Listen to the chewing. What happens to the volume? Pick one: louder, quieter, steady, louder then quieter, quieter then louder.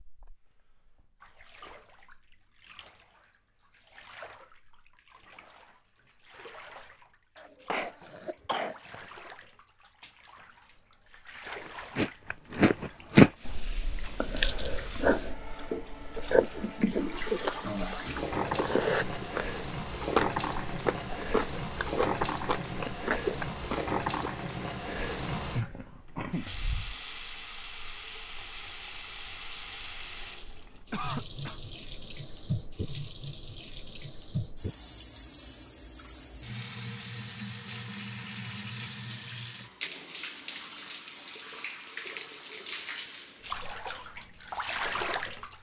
quieter.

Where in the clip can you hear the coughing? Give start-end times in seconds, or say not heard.
7.3-9.1, 25.6-27.0, 30.9-31.6.